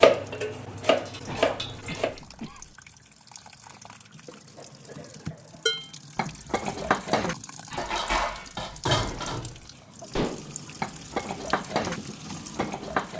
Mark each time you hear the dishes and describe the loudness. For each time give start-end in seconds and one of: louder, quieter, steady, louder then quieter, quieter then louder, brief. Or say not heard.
0.0-2.1 brief
5.7-13.1 steady.